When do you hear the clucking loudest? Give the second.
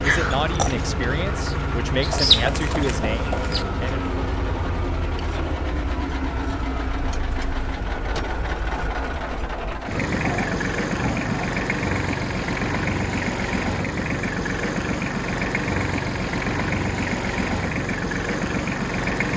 2 s.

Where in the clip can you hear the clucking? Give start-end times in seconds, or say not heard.
2.0-3.6.